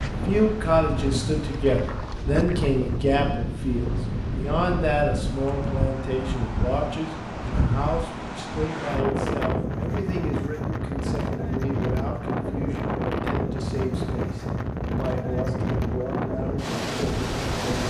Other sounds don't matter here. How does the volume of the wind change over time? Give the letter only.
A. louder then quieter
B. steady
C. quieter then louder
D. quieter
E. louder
B.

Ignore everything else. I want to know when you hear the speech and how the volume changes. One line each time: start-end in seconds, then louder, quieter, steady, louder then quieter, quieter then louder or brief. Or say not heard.
0.2-17.8 quieter.